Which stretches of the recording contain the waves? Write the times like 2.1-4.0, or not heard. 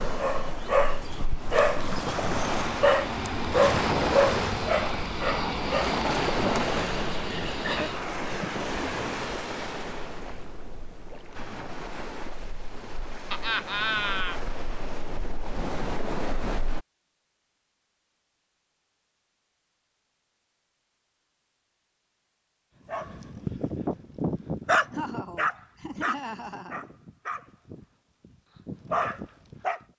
0.0-16.8.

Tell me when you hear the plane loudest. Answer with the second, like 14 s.
6 s.